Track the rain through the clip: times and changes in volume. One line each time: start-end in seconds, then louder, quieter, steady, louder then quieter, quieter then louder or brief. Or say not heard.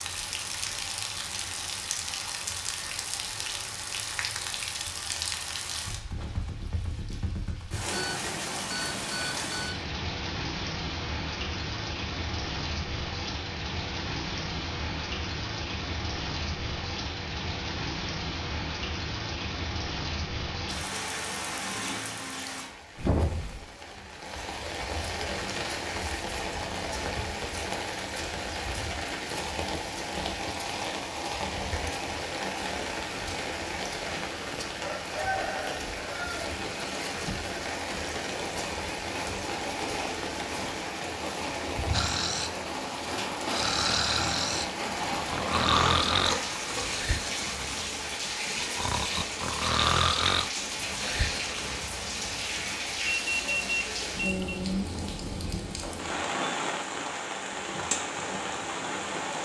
0.0-59.3 steady.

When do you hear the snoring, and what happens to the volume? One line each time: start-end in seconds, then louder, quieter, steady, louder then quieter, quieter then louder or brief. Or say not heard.
41.9-42.5 brief
43.5-52.0 quieter then louder.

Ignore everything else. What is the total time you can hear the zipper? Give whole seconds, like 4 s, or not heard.
2 s.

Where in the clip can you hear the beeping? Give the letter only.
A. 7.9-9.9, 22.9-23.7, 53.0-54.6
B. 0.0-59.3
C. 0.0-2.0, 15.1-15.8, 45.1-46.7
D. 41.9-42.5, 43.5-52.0
A.